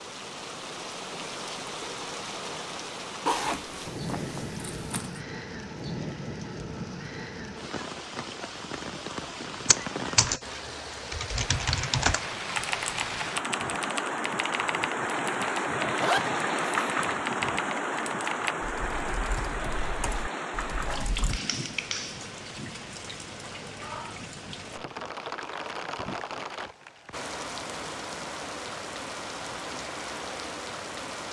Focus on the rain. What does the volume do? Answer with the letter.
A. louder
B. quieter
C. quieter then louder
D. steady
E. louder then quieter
E.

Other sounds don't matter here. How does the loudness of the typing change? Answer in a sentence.
The loudness of the typing goes down.